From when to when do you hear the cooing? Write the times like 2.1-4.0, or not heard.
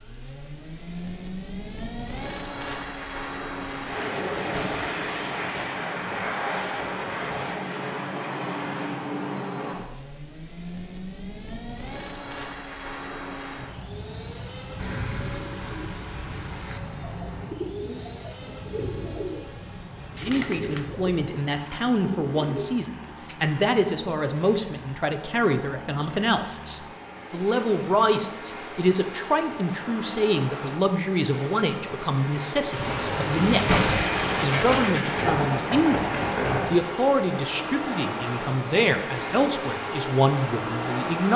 14.8-24.6.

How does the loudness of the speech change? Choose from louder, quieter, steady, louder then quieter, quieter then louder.
steady.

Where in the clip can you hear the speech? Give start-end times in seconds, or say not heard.
20.2-41.3.